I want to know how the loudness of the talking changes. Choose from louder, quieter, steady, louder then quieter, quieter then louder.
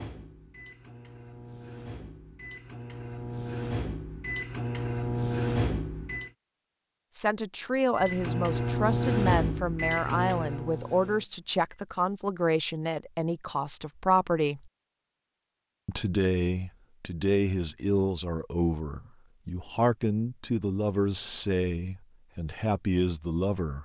steady.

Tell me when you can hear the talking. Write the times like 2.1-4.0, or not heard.
7.1-14.7, 15.8-23.7.